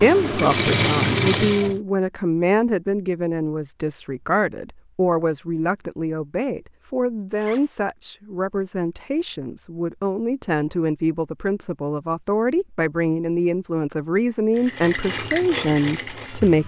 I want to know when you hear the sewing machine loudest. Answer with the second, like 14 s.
1 s.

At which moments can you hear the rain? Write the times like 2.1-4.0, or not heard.
not heard.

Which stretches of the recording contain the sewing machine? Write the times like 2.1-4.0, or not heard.
0.0-1.8, 14.6-16.6.